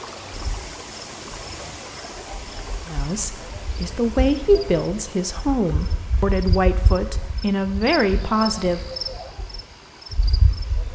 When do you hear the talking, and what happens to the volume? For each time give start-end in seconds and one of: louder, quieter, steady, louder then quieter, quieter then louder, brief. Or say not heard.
2.9-8.8 steady.